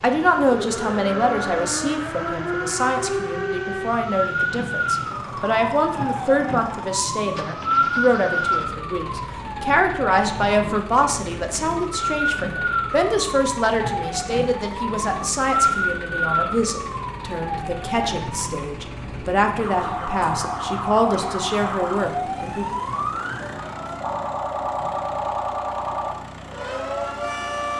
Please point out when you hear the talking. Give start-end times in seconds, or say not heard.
0.0-22.6.